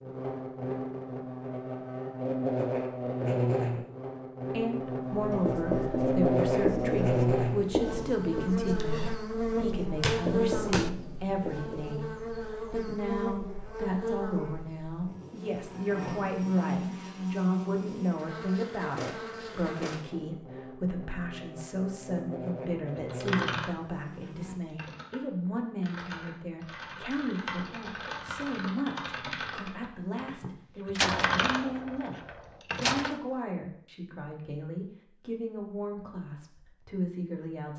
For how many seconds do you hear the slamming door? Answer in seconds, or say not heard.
3 s.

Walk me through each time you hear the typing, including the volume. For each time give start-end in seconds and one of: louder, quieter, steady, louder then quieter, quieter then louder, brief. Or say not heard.
22.9-25.2 brief
25.8-33.1 louder.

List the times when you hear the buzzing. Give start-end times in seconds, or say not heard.
0.0-24.6.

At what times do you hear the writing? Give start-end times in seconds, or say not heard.
5.2-12.0.